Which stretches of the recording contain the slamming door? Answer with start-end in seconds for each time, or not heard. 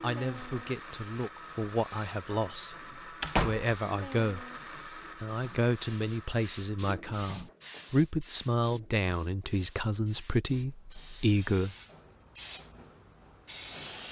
3.2-3.7.